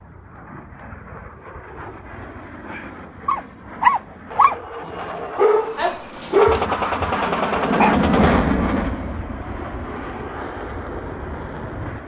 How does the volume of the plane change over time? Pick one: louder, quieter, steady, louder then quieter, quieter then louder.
louder then quieter.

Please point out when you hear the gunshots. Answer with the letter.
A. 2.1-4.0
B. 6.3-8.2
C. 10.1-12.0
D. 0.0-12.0
B.